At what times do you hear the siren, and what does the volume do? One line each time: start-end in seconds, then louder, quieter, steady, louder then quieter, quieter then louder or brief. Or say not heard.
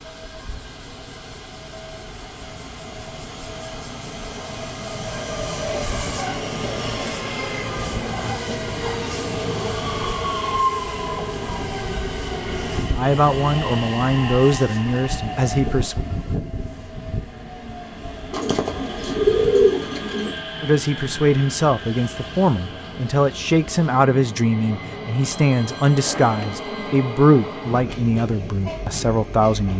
not heard.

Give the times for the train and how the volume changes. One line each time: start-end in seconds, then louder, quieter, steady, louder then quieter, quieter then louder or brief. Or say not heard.
0.0-29.7 louder then quieter.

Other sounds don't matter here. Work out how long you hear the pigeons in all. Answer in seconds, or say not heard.
2 s.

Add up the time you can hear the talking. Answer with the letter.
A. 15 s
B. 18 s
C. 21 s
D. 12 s
D.